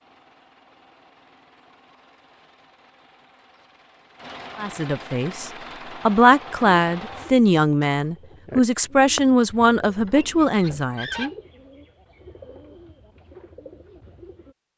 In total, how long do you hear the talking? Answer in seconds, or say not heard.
7 s.